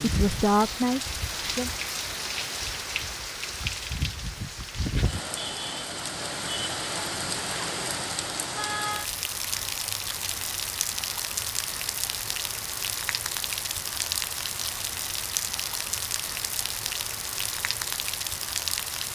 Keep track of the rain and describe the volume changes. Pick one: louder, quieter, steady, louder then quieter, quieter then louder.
steady.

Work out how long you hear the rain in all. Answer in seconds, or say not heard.
19 s.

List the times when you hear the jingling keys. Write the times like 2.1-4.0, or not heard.
not heard.